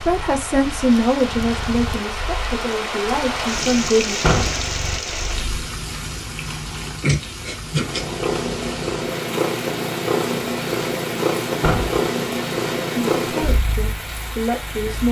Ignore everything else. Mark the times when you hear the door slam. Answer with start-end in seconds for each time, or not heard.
4.2-4.7, 11.6-12.0.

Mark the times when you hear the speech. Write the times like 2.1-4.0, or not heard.
0.0-4.2, 12.9-15.0.